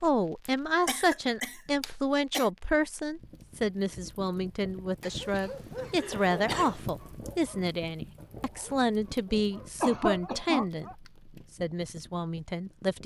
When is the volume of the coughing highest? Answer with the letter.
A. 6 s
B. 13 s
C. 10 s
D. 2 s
C.